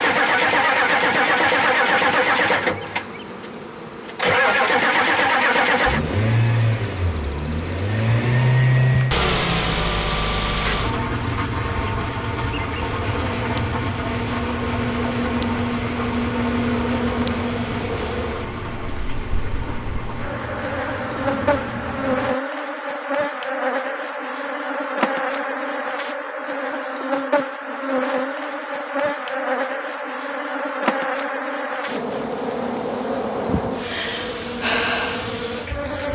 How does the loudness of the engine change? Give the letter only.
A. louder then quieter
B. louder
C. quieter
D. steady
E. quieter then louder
C.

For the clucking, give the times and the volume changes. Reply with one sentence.
You can't hear the clucking here.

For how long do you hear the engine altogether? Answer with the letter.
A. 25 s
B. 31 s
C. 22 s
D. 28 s
C.